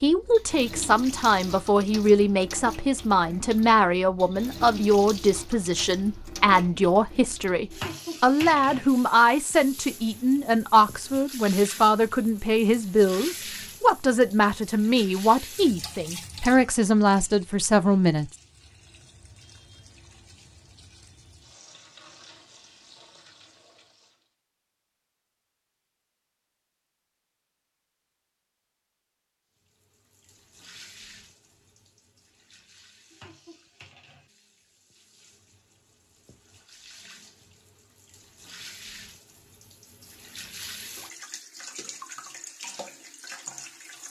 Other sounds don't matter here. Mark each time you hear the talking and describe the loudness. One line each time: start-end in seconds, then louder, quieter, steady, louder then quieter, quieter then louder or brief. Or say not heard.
0.0-18.3 steady.